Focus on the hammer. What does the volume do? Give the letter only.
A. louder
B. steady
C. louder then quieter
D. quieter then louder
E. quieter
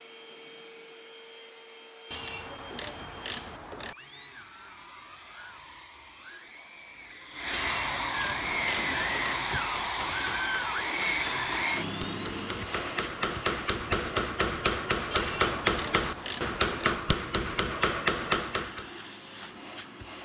A.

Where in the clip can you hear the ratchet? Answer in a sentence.
You can hear the ratchet from 2.1 to 4.0 s, from 7.5 to 9.4 s and from 15.1 to 16.9 s.